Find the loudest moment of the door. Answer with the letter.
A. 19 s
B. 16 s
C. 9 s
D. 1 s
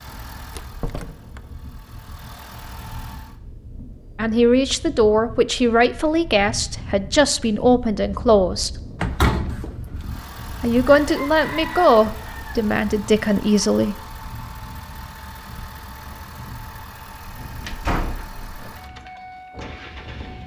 C.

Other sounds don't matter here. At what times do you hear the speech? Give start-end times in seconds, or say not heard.
4.2-8.7, 10.6-13.9.